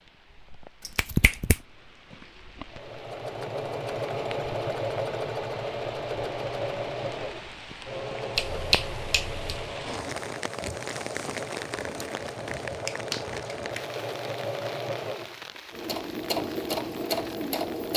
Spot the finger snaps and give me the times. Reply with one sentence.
You can hear the finger snaps from 0.8 to 1.6 s, from 8.3 to 9.5 s and from 12.8 to 13.8 s.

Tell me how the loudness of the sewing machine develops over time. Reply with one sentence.
The volume of the sewing machine goes down, then up.